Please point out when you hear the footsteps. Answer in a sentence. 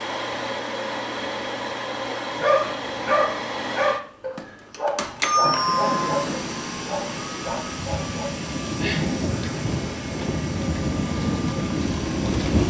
The footsteps can't be heard in this clip.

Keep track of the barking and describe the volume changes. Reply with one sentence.
The volume of the barking goes down.